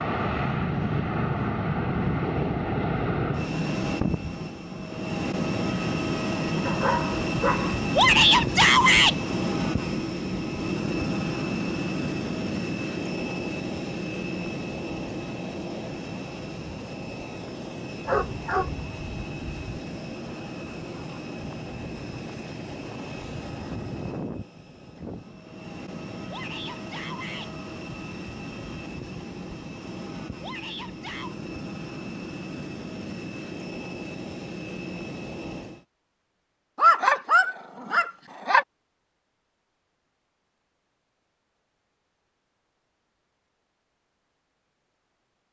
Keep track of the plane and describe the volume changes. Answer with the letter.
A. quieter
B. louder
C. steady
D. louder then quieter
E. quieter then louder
A.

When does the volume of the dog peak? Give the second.
37 s.